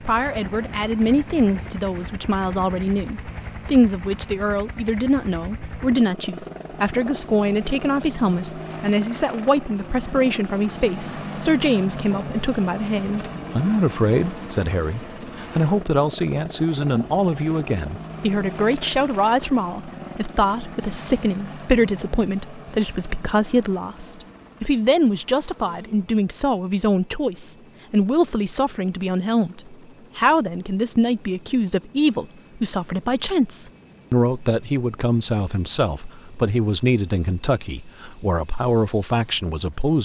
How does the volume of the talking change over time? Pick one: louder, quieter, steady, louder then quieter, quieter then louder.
steady.